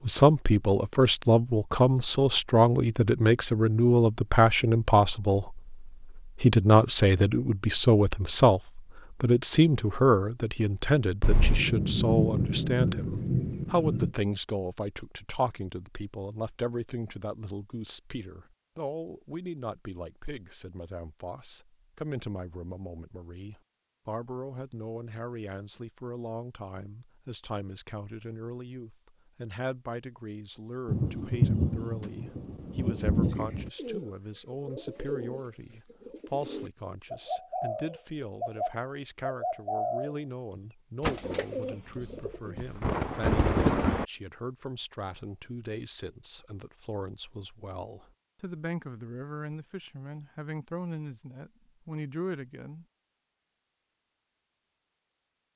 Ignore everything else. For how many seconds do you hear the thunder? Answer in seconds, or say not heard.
7 s.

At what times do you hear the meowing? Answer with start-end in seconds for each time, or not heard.
not heard.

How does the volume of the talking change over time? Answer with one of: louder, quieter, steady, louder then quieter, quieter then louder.
quieter.